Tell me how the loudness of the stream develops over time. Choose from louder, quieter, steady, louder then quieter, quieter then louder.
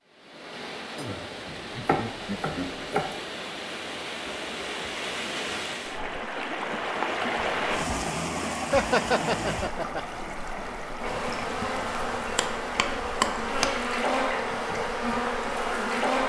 louder then quieter.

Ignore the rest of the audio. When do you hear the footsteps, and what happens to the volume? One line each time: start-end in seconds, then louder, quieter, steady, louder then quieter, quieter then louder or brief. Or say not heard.
not heard.